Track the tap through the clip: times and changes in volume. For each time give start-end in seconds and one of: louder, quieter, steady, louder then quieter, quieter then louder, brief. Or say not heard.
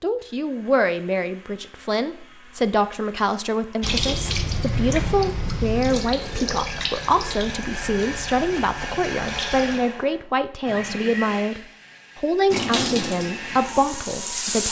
3.8-9.8 quieter
12.5-14.6 brief.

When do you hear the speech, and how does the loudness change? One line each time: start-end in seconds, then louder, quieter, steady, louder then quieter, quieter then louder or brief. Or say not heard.
0.0-14.6 steady.